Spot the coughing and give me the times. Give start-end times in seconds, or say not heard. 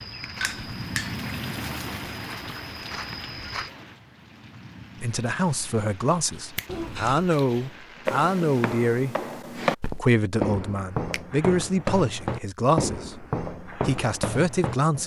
6.7-7.3.